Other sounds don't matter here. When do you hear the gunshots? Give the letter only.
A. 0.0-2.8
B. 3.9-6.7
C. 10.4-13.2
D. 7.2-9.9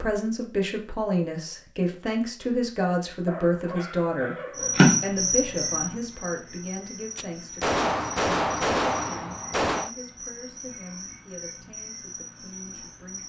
D.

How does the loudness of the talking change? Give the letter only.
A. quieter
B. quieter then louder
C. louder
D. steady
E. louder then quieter
A.